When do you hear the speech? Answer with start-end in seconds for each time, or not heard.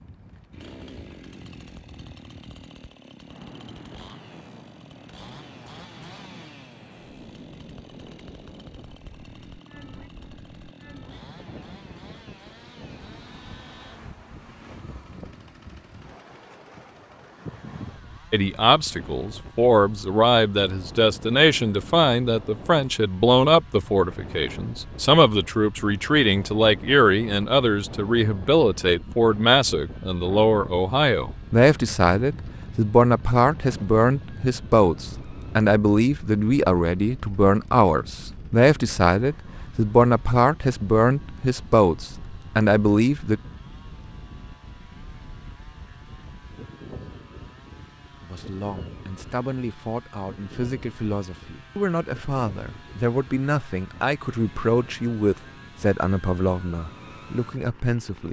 18.3-43.4, 48.2-58.2.